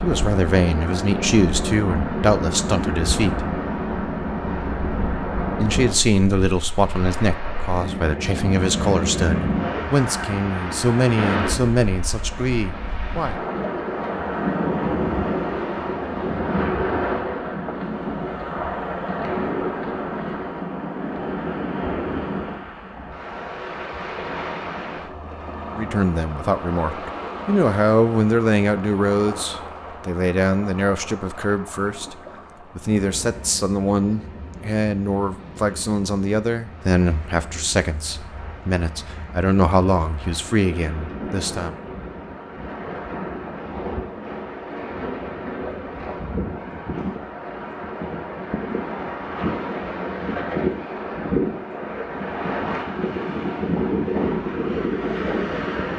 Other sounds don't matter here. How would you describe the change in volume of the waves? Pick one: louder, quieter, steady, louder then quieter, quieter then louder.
quieter then louder.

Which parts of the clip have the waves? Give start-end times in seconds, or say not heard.
0.0-55.9.